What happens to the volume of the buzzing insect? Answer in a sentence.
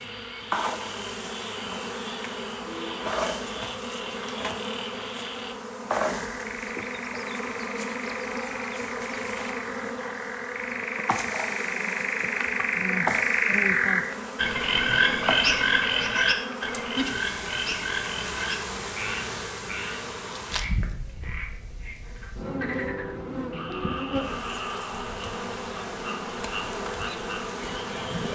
The volume of the buzzing insect stays about the same.